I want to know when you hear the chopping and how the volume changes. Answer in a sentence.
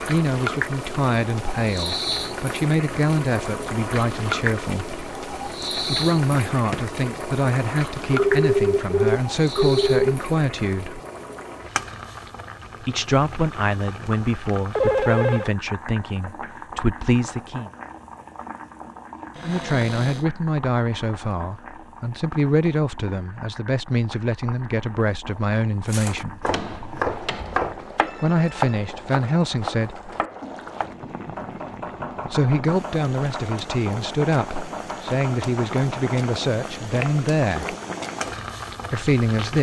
You can hear the chopping from 25.9 to 37.8 s, getting quieter.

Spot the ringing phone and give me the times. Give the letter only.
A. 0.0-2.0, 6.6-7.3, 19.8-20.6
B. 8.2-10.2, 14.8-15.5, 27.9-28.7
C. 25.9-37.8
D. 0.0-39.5
B.